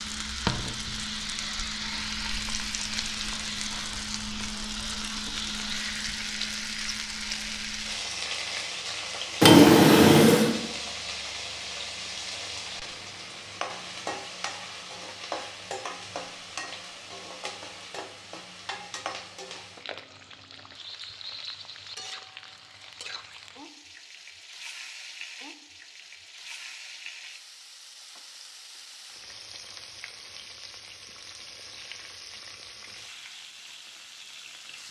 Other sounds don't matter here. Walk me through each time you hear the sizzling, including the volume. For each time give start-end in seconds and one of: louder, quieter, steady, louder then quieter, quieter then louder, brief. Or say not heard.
0.0-34.8 quieter.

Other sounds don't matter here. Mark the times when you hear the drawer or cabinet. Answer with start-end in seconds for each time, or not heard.
9.4-10.6.